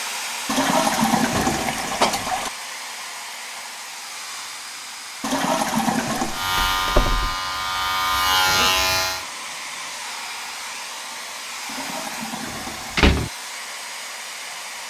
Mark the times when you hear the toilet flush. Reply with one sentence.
You can hear the toilet flush from 0.5 to 2.5 s, from 5.2 to 6.5 s and from 11.7 to 13.1 s.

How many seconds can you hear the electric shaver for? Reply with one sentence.
You can hear the electric shaver for 3 seconds altogether.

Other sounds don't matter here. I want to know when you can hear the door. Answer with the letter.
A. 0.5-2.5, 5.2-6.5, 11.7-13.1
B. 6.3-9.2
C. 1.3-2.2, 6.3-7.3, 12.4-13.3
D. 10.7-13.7
C.